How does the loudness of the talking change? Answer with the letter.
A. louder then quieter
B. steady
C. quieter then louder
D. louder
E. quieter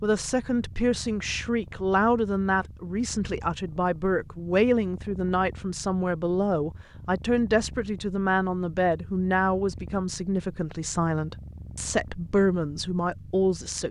B.